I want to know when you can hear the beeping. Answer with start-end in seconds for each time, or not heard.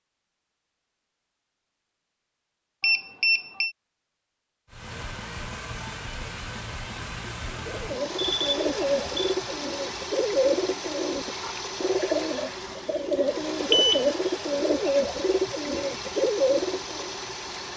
2.8-3.8, 8.2-9.3, 13.1-14.1.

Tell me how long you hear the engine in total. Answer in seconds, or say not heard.
13 s.